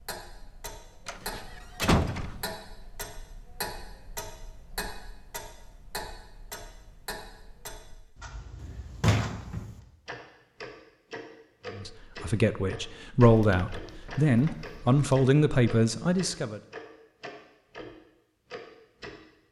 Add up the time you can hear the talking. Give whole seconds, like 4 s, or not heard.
5 s.